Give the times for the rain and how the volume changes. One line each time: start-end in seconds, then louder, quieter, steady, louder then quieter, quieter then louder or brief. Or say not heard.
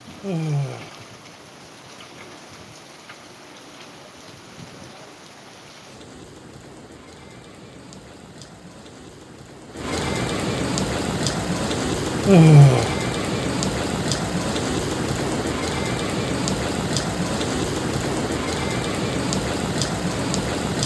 0.0-20.8 louder.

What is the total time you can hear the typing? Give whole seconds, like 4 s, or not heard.
not heard.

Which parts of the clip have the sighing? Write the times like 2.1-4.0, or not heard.
0.2-0.9, 12.2-12.9.